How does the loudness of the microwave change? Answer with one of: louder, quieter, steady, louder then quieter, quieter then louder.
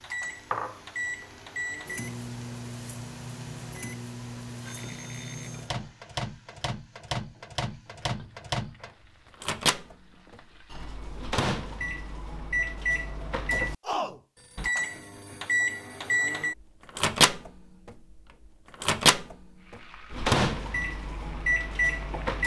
louder.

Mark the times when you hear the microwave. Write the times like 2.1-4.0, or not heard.
0.0-22.4.